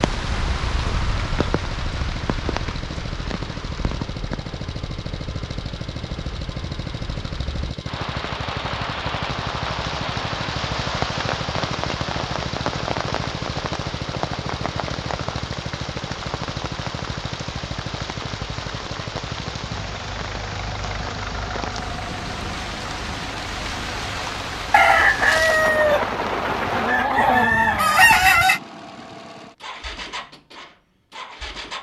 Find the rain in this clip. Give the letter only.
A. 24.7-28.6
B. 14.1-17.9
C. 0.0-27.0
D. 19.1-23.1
C.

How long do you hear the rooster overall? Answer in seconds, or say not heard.
4 s.